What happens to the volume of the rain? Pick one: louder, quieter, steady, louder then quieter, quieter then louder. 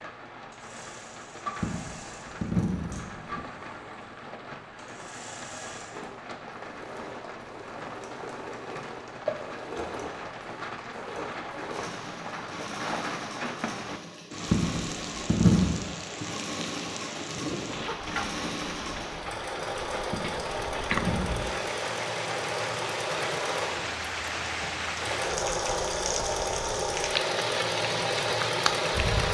louder.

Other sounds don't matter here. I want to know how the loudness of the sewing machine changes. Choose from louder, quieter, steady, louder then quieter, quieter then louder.
louder.